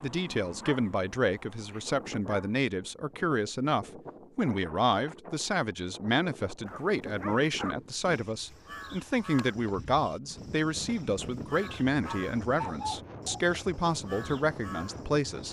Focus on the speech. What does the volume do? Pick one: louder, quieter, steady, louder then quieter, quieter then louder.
steady.